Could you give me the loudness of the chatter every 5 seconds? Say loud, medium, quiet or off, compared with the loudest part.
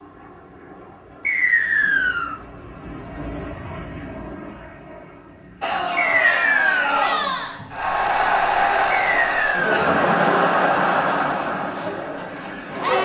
off, loud, loud.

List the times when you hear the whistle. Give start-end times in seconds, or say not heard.
1.2-2.4, 6.0-6.9, 8.9-9.8.